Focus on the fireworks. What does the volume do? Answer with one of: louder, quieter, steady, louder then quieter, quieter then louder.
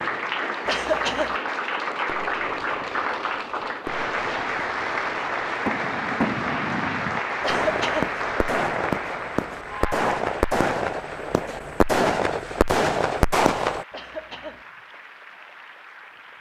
louder.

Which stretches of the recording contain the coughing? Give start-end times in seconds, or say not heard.
0.7-1.4, 7.4-8.2, 13.9-14.7.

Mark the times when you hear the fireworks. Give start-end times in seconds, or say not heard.
2.0-13.8.